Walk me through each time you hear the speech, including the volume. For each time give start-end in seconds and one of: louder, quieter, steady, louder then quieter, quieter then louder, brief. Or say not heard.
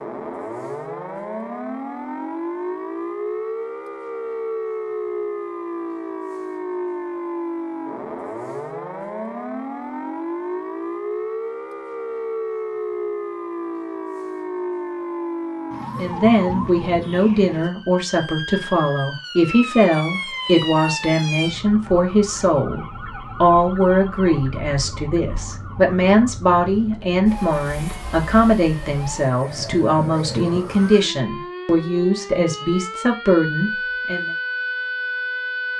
15.9-34.3 steady.